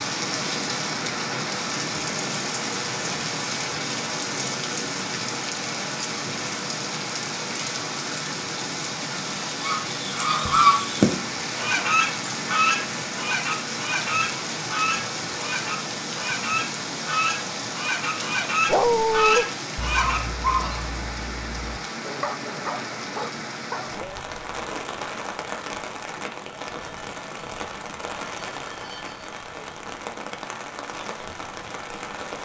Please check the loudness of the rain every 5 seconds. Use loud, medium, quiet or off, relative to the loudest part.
loud, loud, loud, loud, medium, medium, medium.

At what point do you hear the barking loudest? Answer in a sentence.
The loudest moment of the barking is at 19 seconds.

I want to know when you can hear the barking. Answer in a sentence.
You can hear the barking from 18.6 to 24.2 s.